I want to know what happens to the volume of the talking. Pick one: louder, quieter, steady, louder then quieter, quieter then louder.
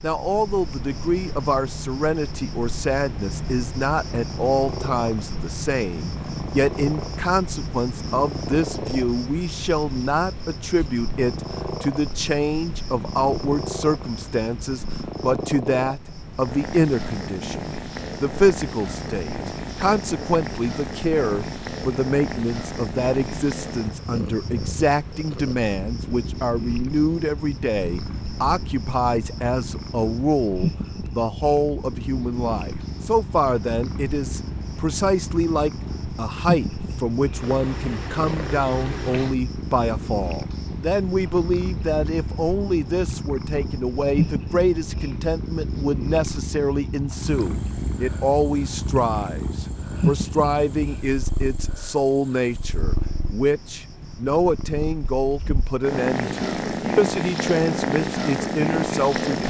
steady.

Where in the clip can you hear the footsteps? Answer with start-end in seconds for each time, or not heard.
not heard.